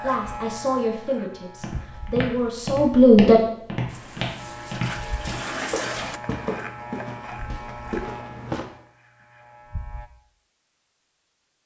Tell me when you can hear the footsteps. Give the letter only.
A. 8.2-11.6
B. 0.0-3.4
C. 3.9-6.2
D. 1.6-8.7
D.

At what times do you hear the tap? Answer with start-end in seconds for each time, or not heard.
3.9-6.2.